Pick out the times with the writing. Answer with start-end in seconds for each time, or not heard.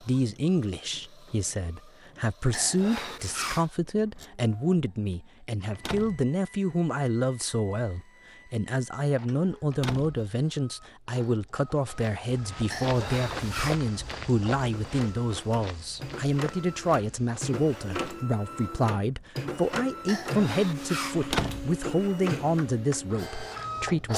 not heard.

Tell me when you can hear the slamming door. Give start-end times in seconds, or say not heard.
5.7-6.3, 9.7-10.2, 21.2-21.8.